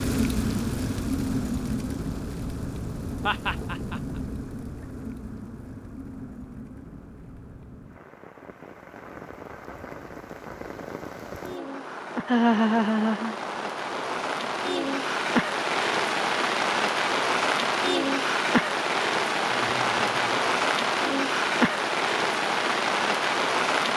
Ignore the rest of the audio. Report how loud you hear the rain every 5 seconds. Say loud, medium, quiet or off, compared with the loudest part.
medium, quiet, medium, loud, loud.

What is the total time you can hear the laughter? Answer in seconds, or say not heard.
3 s.